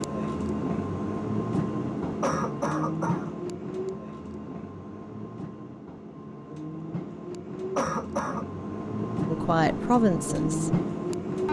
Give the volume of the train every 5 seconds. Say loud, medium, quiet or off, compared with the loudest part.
loud, medium, loud.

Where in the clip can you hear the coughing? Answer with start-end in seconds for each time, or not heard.
2.2-3.4, 7.8-8.4.